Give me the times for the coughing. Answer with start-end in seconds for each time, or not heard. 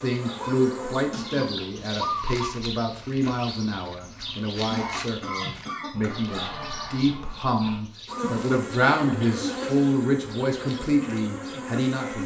0.3-1.6, 4.2-6.3, 8.9-9.8.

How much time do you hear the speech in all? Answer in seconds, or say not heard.
12 s.